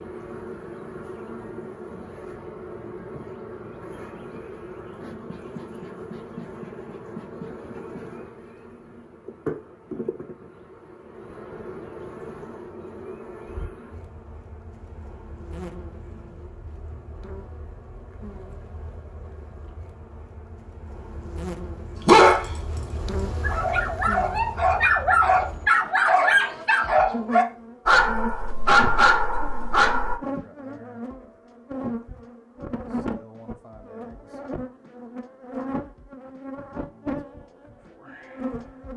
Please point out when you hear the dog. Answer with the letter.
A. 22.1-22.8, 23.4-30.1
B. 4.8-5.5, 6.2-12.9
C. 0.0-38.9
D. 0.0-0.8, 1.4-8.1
A.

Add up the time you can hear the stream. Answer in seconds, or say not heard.
not heard.